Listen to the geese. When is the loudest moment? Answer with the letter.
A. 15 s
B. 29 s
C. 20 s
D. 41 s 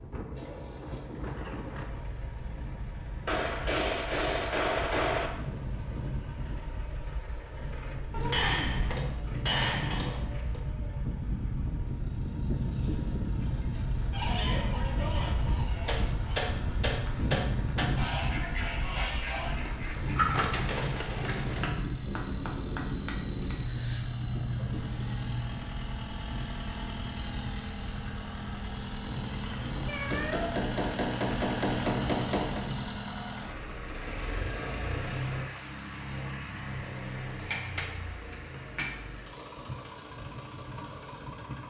C.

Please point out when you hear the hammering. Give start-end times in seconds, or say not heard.
3.2-5.3, 8.3-10.6, 15.8-17.9, 22.1-23.6, 30.1-32.6, 37.4-39.0.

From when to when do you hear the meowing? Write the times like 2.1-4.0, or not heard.
8.1-9.0, 23.6-25.6, 29.9-30.6.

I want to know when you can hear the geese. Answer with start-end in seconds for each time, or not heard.
14.1-21.7.